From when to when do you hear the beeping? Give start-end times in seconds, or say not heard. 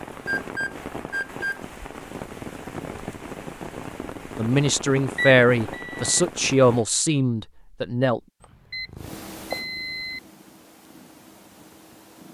0.2-1.6, 5.2-6.2, 8.4-10.2.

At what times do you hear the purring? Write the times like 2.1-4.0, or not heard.
8.8-12.2.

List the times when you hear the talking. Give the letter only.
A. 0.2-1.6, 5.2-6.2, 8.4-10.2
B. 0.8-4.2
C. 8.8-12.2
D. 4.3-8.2
D.